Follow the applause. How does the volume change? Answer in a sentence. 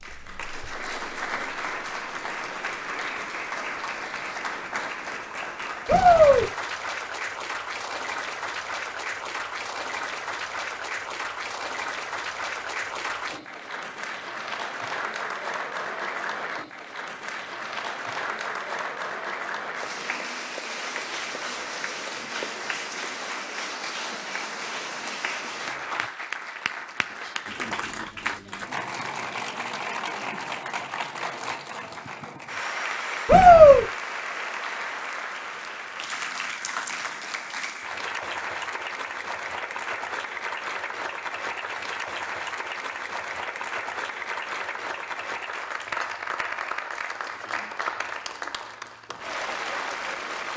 The volume of the applause stays about the same.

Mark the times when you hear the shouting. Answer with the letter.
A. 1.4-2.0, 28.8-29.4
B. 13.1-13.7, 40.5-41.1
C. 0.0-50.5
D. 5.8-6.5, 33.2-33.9
D.